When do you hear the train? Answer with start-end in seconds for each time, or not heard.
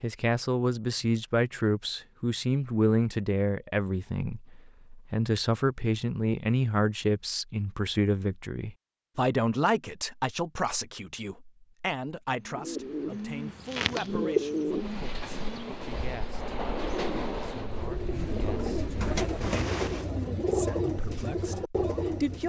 14.7-20.1.